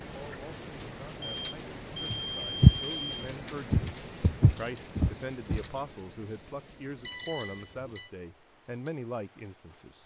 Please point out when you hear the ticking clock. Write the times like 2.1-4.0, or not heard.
not heard.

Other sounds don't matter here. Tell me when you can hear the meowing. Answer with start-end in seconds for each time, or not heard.
not heard.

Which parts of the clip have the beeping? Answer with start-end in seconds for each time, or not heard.
1.2-3.1, 7.0-8.1.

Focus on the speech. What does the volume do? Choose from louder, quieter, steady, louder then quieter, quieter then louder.
louder.